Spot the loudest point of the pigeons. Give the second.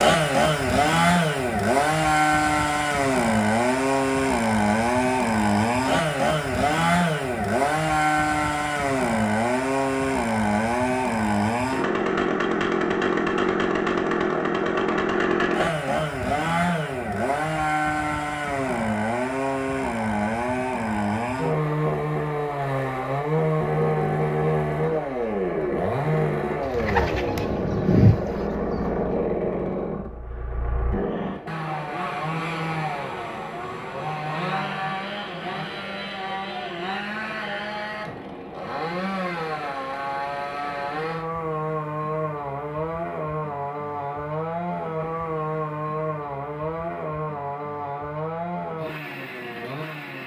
28 s.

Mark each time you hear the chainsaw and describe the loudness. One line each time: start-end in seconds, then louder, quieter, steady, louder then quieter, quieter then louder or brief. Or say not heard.
0.0-50.2 quieter.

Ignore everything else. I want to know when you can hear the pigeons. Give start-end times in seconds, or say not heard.
26.6-29.1.